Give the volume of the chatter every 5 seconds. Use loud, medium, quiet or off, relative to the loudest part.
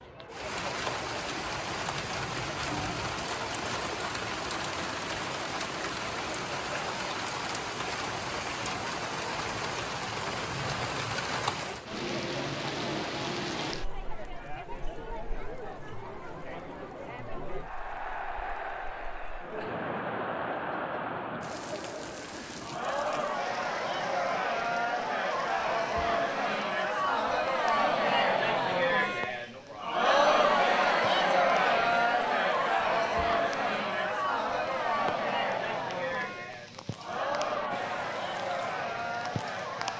quiet, quiet, quiet, quiet, medium, loud, loud, medium.